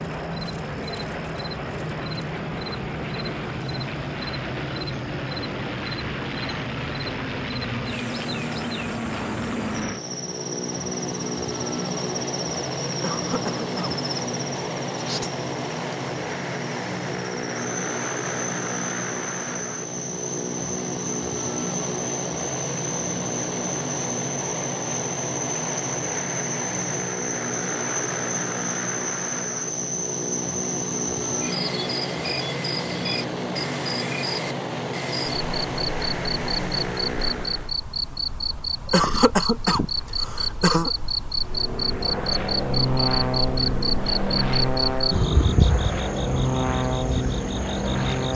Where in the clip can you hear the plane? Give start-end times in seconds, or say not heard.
0.0-37.8, 41.4-48.3.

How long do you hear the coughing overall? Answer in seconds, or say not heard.
3 s.